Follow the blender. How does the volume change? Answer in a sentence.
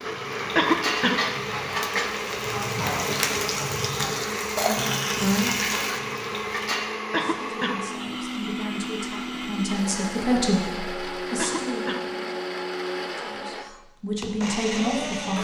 The loudness of the blender stays about the same.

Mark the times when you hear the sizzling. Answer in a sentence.
You can hear the sizzling from 0.0 to 7.0 s.